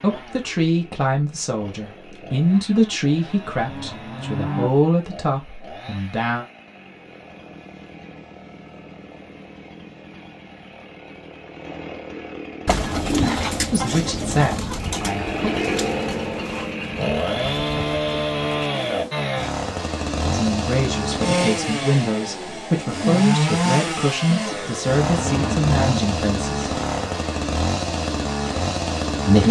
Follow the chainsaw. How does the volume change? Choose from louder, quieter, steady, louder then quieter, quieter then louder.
louder.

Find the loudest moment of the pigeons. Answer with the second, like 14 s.
13 s.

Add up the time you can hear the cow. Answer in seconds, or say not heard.
4 s.